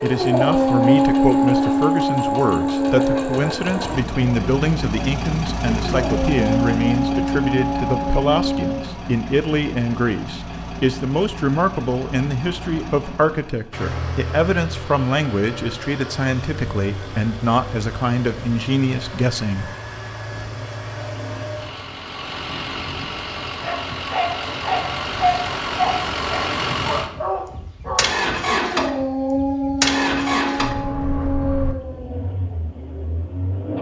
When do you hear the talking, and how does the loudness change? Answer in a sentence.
You can hear the talking from 0.0 to 19.7 s, at a steady volume.